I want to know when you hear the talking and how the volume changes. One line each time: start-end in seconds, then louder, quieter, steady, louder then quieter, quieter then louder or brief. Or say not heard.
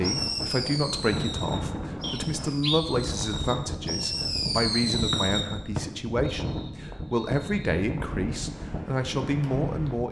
0.0-10.0 steady.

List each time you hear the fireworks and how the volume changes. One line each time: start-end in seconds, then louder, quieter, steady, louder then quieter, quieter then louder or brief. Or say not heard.
0.0-5.5 quieter then louder.